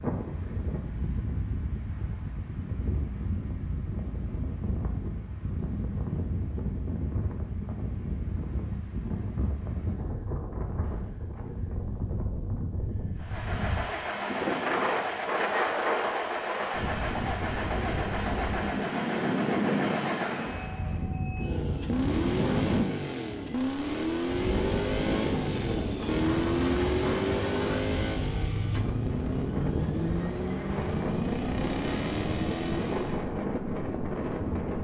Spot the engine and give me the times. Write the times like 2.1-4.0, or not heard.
13.2-33.3.